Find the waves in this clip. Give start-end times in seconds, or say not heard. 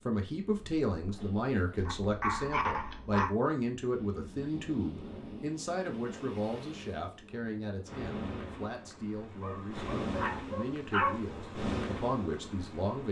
0.2-13.0.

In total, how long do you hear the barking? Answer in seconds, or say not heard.
3 s.